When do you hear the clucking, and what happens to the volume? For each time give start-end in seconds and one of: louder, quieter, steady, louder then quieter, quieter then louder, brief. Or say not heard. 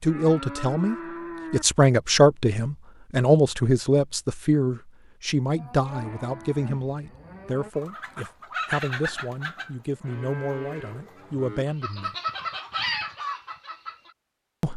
7.8-14.1 quieter then louder.